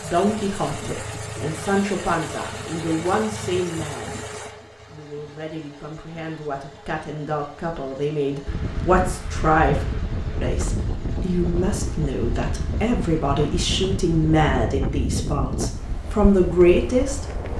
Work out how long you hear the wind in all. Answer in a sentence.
The wind can be heard for 9 seconds in total.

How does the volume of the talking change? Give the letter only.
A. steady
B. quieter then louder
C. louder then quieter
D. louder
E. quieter
B.